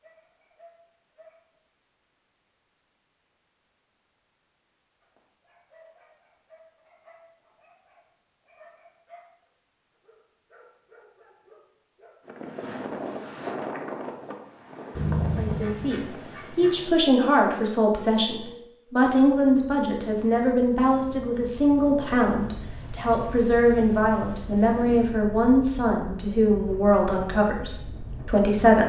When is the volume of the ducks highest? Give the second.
15 s.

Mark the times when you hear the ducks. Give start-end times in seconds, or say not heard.
14.9-16.9.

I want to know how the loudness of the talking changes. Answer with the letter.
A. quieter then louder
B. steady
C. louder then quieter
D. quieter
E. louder
B.